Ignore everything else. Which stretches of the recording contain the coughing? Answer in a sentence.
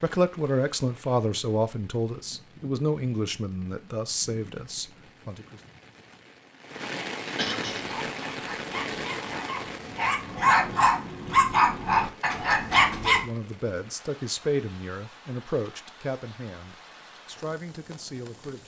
The coughing can be heard from 7.3 to 7.9 s.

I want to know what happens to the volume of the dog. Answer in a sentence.
The loudness of the dog goes up.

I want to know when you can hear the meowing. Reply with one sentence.
You can't hear the meowing here.